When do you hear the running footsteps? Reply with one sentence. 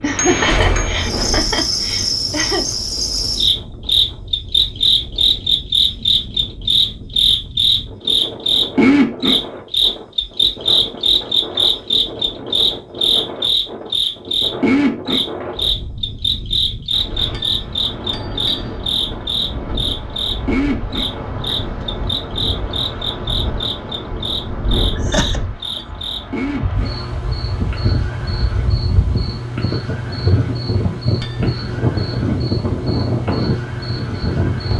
The running footsteps can't be heard in this clip.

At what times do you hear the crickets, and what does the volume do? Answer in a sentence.
You can hear the crickets from 0.0 to 34.7 s, getting quieter.